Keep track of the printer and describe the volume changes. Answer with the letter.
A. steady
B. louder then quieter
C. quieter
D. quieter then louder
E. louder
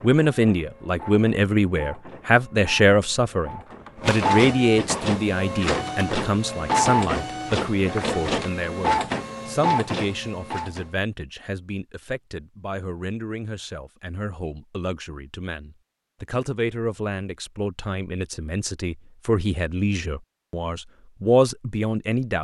E.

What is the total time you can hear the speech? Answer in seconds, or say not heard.
22 s.